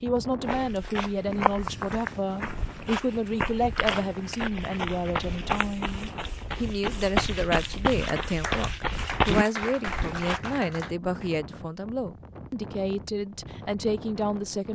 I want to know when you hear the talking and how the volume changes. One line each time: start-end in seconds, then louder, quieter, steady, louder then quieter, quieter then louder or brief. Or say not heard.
0.0-14.7 steady.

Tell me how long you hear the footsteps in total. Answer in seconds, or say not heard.
10 s.